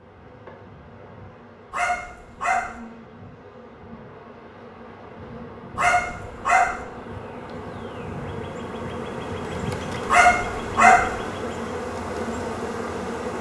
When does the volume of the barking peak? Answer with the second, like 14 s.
11 s.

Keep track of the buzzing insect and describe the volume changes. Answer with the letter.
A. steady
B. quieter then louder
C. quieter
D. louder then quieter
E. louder
E.